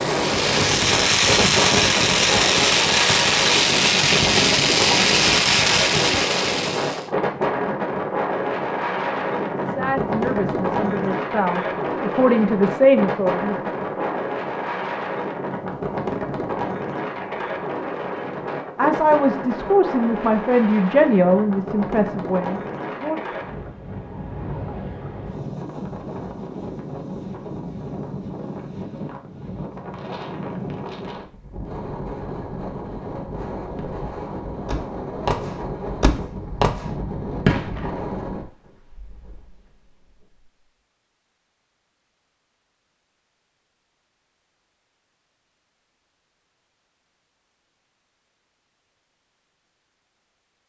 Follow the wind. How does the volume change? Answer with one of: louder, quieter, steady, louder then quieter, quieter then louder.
quieter.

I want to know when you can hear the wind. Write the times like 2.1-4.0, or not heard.
0.0-38.5.